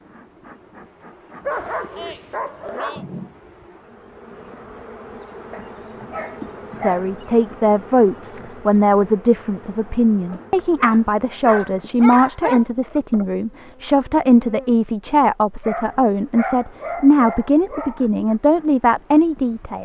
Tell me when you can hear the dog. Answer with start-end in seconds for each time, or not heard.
1.4-3.0, 5.5-7.0, 10.3-12.8, 15.6-18.1.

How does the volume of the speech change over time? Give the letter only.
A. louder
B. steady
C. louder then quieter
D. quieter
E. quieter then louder
B.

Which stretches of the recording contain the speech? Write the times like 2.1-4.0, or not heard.
6.8-19.8.